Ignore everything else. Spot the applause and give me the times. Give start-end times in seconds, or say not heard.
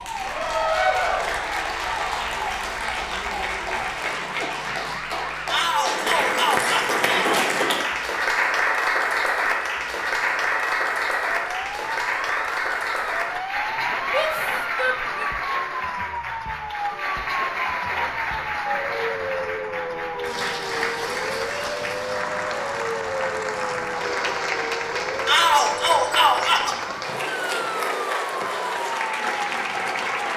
0.0-30.3.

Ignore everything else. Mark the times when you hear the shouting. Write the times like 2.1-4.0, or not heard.
5.5-7.5, 14.1-15.1, 25.2-26.8.